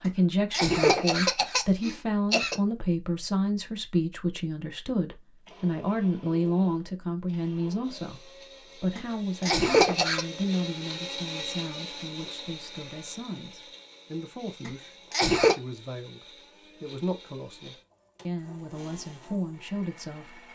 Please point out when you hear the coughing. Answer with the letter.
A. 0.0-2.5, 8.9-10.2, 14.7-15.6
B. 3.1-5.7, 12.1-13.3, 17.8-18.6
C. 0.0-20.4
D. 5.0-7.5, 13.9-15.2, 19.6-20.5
A.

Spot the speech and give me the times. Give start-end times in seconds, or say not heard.
0.0-20.4.